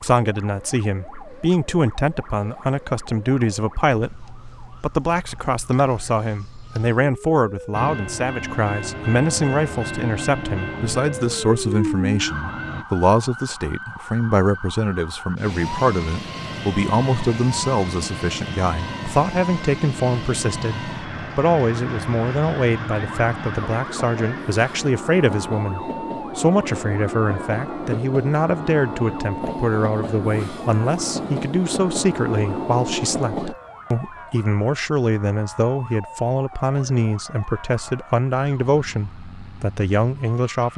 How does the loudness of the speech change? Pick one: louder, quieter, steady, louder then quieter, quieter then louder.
steady.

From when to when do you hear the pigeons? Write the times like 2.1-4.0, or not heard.
not heard.